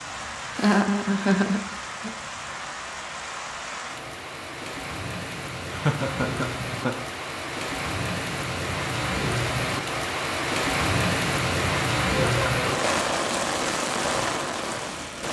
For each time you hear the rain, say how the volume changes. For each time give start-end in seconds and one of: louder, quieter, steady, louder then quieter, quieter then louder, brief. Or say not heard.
0.0-15.2 louder.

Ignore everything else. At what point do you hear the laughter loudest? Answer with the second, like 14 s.
1 s.